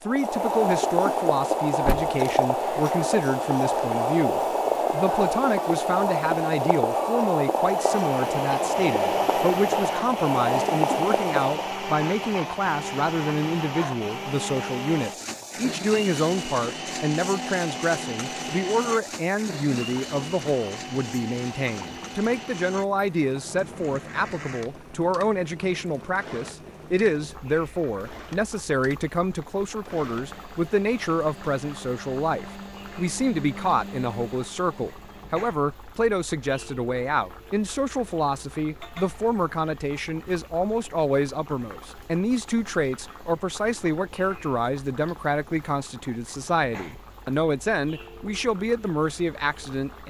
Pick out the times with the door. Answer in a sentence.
The door can be heard from 1.9 to 2.3 s.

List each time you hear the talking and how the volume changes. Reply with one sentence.
The talking can be heard from 0.0 to 50.0 s, at a steady volume.